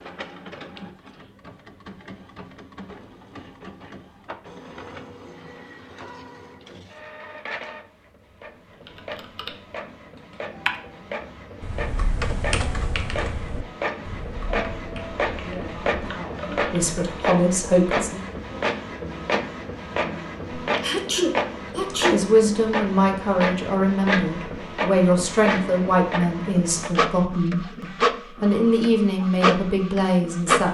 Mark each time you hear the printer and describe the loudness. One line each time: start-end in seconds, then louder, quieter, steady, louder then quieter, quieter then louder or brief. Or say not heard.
0.0-30.6 louder.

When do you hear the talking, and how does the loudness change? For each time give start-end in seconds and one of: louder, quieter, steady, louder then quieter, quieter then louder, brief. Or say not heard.
15.3-18.2 brief
22.1-30.6 steady.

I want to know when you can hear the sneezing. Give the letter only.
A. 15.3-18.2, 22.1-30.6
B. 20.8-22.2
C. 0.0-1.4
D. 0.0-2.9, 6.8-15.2
B.